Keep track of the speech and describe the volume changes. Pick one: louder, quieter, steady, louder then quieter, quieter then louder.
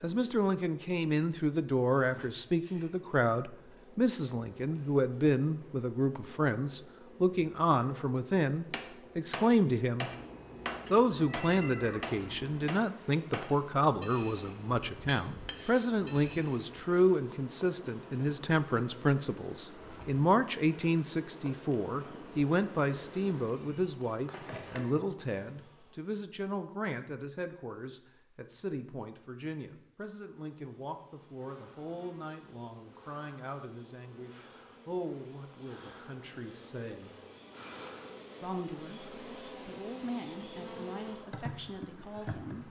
quieter.